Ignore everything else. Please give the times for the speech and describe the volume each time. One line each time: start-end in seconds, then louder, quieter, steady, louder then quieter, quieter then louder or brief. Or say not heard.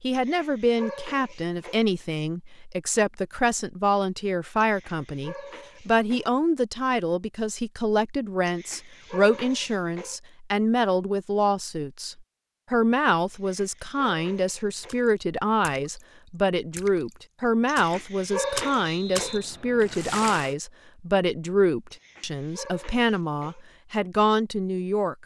0.0-25.1 steady.